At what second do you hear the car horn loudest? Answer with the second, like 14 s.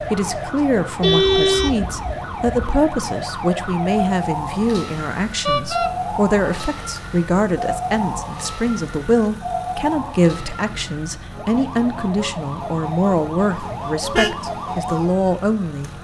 1 s.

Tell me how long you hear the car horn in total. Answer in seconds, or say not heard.
3 s.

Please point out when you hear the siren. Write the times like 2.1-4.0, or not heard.
0.0-16.0.